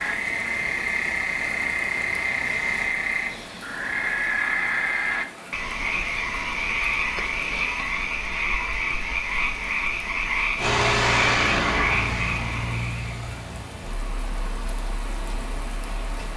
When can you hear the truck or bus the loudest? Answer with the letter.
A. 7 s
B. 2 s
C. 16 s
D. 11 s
D.